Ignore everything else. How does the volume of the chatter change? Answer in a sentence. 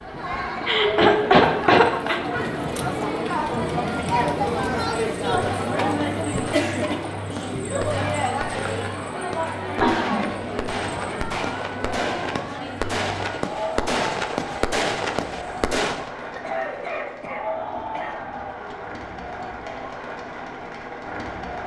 The loudness of the chatter goes down.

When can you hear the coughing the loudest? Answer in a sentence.
The loudest moment of the coughing is at 1 second.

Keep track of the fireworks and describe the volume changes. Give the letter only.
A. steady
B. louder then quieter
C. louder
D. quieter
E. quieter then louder
C.